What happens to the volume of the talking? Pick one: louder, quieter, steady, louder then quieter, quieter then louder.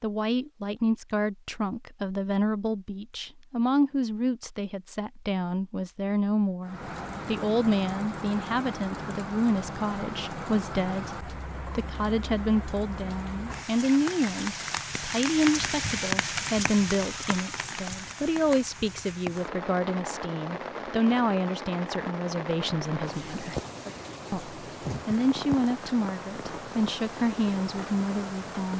steady.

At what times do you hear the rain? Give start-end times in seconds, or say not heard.
6.6-28.7.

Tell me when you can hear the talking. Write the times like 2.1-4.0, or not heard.
0.0-23.6, 24.3-28.7.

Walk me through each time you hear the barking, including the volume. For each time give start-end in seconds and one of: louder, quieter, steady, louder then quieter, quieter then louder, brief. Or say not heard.
not heard.